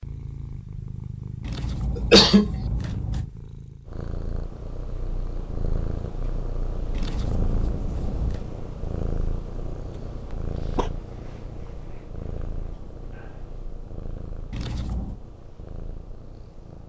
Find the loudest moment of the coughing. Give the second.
2 s.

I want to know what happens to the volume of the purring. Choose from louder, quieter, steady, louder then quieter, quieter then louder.
quieter.